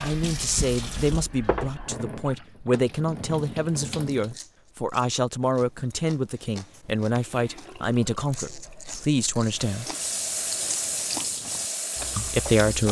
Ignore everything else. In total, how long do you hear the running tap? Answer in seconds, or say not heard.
10 s.